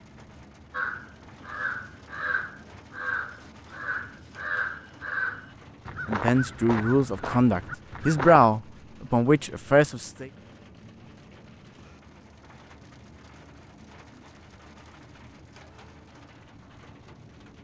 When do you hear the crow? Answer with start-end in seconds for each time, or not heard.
0.7-8.5.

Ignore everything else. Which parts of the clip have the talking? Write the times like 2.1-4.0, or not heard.
6.0-10.2.